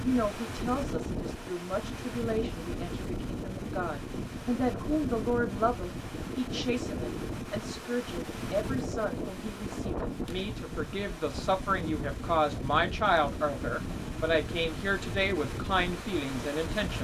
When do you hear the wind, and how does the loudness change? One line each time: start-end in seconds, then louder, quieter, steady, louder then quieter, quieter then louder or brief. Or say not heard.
0.0-16.9 steady.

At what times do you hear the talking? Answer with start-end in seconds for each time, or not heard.
0.0-16.9.